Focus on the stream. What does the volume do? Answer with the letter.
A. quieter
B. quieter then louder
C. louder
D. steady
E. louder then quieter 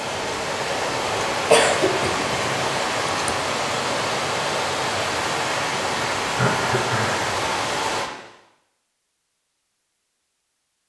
D.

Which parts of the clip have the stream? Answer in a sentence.
The stream can be heard from 0.0 to 8.1 s.